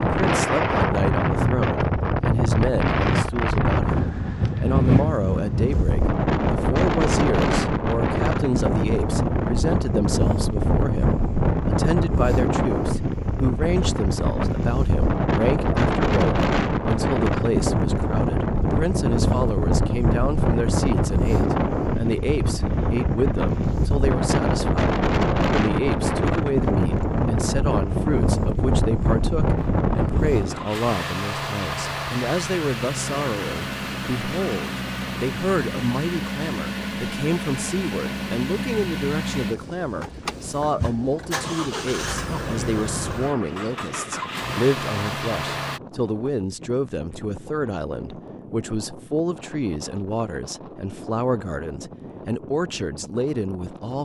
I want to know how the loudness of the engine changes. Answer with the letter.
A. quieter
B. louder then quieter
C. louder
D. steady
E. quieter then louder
D.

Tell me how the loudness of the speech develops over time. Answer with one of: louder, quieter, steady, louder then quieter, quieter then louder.
steady.